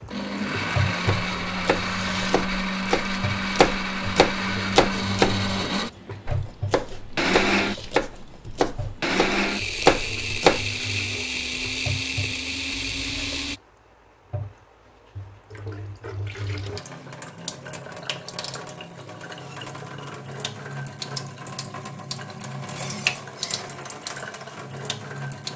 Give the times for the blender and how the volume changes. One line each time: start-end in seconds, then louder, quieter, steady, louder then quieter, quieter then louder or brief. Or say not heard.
0.0-13.6 steady.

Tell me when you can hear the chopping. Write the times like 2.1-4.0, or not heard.
1.1-10.7.